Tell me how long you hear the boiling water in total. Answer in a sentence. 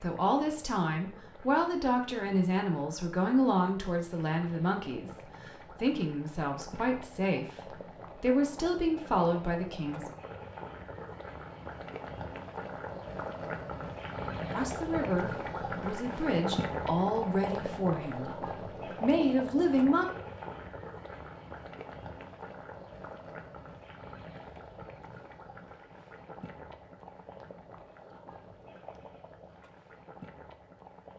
The boiling water can be heard for 31 seconds in total.